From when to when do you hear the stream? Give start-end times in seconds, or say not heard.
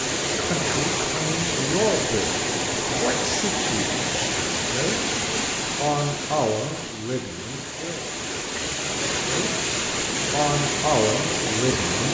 0.0-12.1.